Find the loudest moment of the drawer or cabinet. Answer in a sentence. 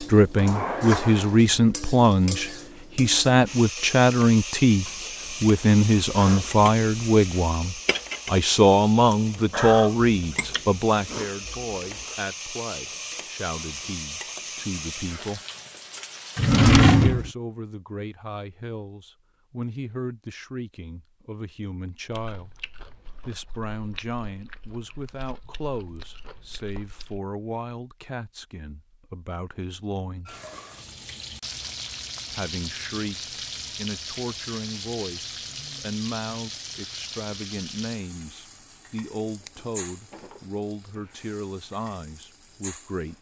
The volume of the drawer or cabinet peaks at 17 seconds.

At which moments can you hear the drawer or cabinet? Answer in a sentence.
The drawer or cabinet can be heard from 0.3 to 1.4 s, from 16.4 to 17.3 s and from 39.5 to 41.0 s.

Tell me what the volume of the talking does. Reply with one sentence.
The volume of the talking goes down.